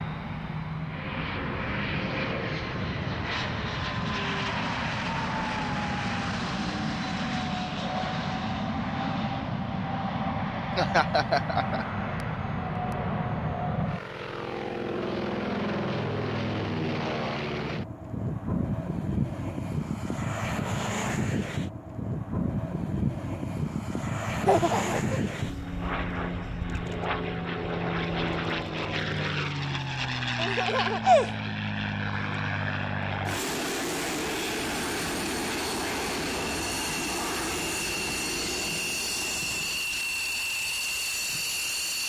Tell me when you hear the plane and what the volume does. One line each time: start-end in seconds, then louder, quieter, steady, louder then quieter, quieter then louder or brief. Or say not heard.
0.0-42.0 steady.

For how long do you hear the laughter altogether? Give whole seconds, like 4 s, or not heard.
3 s.